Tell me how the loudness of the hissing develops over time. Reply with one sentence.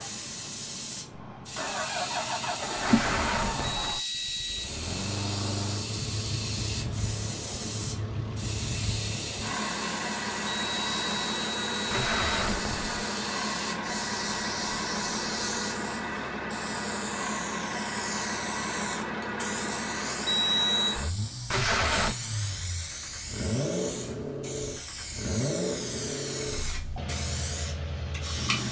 The volume of the hissing stays about the same.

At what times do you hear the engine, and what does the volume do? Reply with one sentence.
You can hear the engine from 0.0 to 28.6 s, at a steady volume.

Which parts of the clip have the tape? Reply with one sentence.
The tape can be heard from 2.9 to 4.0 s, from 11.9 to 12.8 s and from 21.5 to 22.1 s.